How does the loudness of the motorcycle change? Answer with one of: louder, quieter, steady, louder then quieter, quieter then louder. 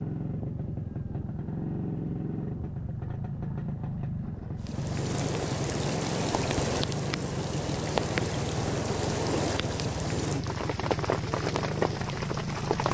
steady.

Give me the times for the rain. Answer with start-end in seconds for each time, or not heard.
4.6-12.8.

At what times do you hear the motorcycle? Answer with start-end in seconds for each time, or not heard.
0.0-12.8.